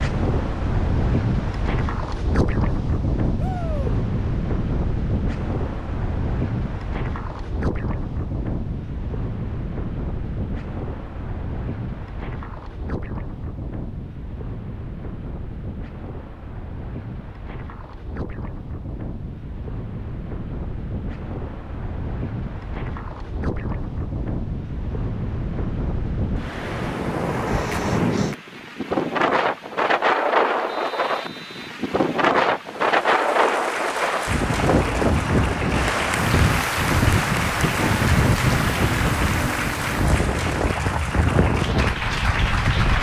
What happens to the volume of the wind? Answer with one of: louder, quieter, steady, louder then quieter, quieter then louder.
quieter then louder.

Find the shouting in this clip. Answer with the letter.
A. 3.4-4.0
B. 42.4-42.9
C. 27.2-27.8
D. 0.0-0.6
A.